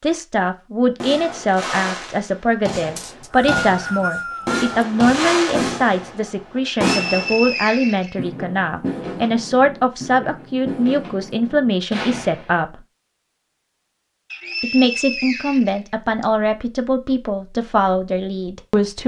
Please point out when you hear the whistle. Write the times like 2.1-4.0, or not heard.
3.0-4.7, 6.7-8.2, 14.3-16.2.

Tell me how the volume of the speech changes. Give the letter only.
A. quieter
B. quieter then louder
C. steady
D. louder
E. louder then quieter
C.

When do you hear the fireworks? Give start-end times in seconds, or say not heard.
1.0-12.6.